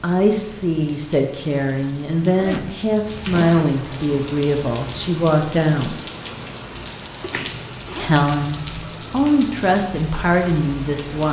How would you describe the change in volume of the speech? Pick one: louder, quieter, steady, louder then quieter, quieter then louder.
steady.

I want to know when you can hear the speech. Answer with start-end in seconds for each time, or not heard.
0.0-6.0, 8.0-11.2.